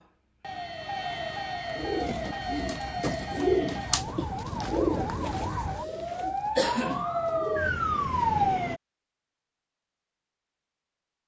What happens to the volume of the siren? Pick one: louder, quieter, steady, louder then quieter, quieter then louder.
louder.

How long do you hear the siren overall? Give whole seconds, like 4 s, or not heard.
9 s.